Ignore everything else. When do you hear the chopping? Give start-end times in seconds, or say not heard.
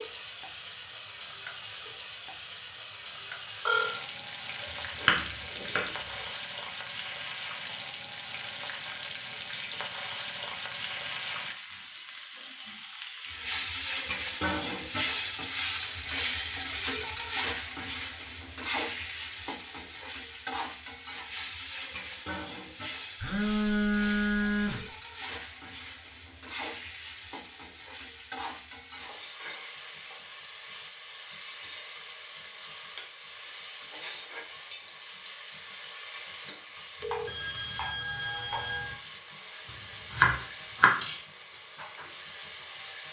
4.6-6.3, 40.1-40.9.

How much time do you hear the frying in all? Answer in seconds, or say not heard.
43 s.